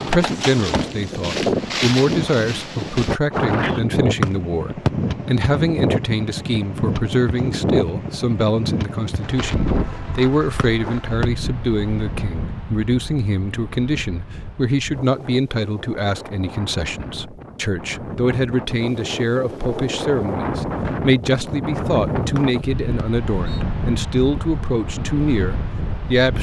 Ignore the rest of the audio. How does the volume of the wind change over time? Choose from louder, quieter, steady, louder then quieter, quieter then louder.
quieter then louder.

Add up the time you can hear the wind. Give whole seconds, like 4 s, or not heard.
26 s.